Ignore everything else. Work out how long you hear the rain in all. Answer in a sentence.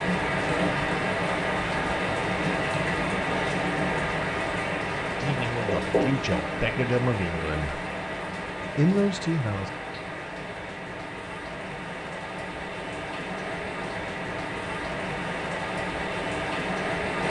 You can hear the rain for 17 seconds altogether.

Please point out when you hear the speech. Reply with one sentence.
You can hear the speech from 5.2 to 7.8 s and from 8.8 to 9.7 s.